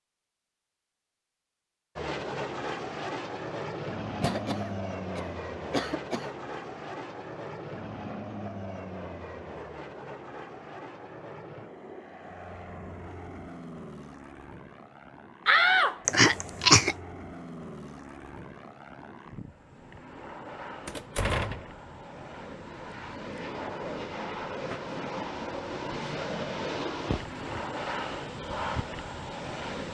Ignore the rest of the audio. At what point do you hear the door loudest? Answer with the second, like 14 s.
16 s.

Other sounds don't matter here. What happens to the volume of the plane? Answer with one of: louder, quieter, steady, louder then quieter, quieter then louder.
quieter then louder.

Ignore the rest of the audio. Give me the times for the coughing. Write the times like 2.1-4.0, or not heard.
4.2-6.3, 16.1-16.9, 27.1-27.8.